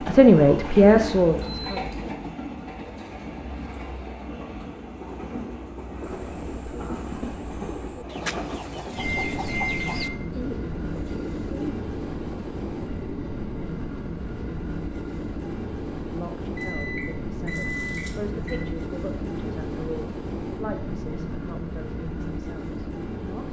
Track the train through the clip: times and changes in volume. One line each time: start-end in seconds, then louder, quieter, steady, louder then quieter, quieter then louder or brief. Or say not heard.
0.0-23.4 steady.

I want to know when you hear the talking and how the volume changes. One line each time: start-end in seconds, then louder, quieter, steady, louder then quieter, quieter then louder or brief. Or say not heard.
0.0-2.0 brief
16.0-23.4 louder then quieter.